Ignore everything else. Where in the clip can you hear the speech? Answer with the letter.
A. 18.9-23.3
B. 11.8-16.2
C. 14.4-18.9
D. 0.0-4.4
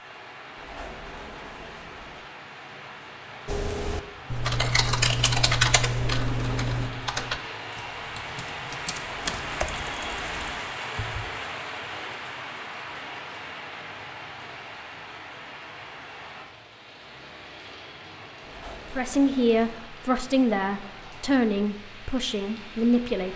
A.